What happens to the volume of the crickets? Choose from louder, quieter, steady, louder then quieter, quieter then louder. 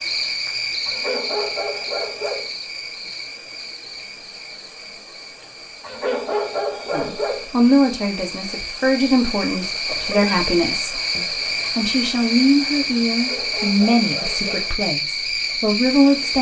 quieter then louder.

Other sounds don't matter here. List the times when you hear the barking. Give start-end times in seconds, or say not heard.
0.8-2.5, 5.8-7.5, 13.1-14.8.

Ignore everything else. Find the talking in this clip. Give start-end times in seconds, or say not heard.
6.9-16.3.